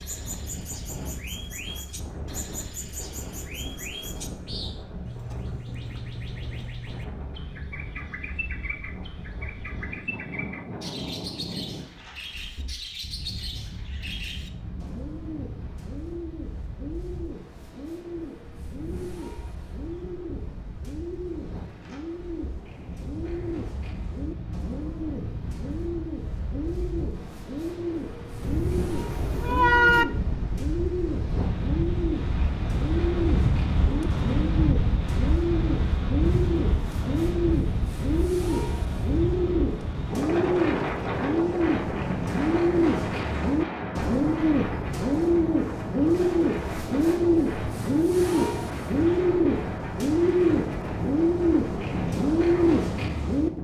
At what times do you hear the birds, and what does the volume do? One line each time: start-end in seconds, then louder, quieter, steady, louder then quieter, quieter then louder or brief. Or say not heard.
0.0-53.5 louder.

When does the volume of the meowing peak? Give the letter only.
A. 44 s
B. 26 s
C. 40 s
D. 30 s
D.